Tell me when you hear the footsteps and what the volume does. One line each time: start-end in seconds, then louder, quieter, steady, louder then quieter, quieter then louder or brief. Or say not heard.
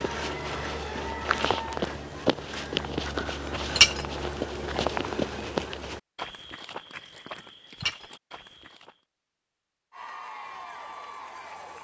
0.0-8.9 quieter.